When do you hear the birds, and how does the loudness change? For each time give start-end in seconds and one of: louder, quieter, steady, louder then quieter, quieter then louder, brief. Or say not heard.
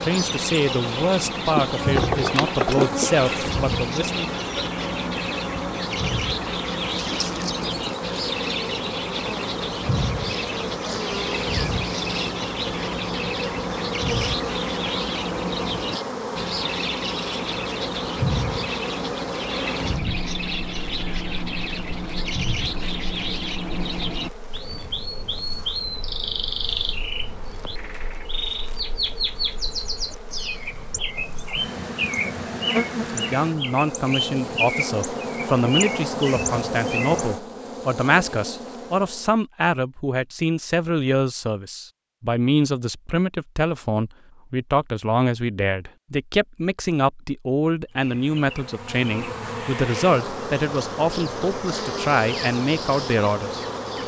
0.0-37.2 steady.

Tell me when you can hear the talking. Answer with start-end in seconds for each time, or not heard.
0.0-4.3, 33.1-53.6.